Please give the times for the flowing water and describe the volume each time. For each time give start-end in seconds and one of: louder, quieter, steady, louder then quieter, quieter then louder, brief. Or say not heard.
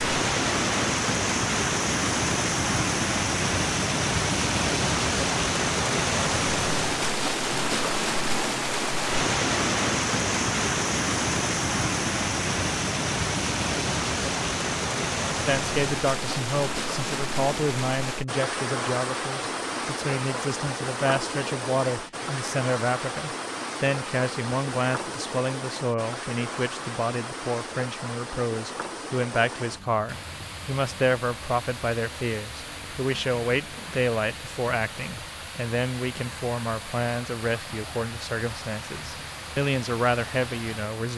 0.0-41.1 quieter.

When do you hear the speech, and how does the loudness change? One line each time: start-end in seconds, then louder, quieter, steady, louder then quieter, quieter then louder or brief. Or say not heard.
15.4-41.1 steady.